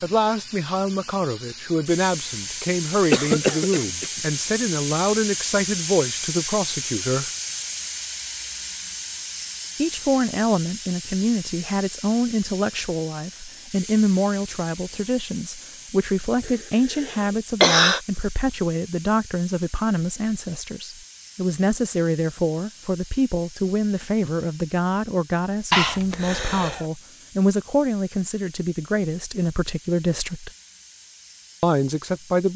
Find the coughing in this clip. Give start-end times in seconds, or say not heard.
3.1-4.2, 16.4-18.0, 25.7-26.9.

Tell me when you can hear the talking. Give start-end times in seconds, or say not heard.
0.0-7.3, 9.8-30.5, 31.6-32.5.